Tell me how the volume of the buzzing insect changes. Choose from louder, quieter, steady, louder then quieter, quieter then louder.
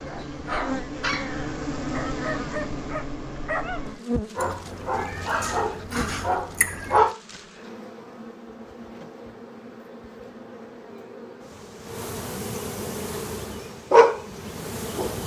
quieter then louder.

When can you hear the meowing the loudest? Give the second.
7 s.